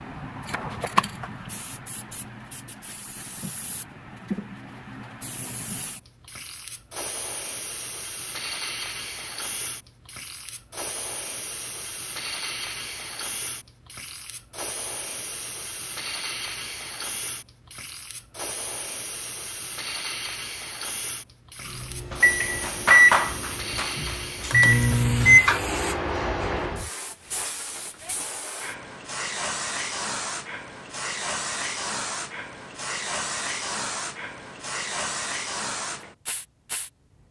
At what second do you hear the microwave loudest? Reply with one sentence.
The loudest moment of the microwave is at 25 seconds.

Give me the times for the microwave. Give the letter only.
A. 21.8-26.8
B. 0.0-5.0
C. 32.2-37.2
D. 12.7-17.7
A.